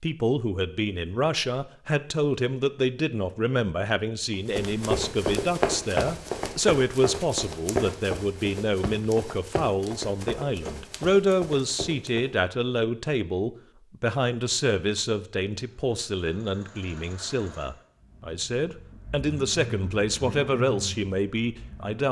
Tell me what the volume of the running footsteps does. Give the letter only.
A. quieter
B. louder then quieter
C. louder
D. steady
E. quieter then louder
A.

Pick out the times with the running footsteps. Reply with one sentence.
You can hear the running footsteps from 4.5 to 12.3 s.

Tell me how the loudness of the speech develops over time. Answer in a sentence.
The volume of the speech stays about the same.